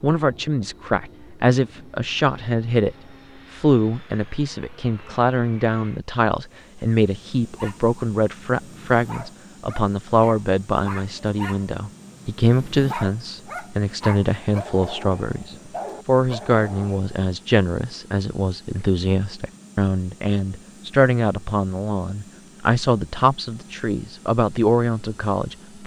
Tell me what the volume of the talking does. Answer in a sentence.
The loudness of the talking stays about the same.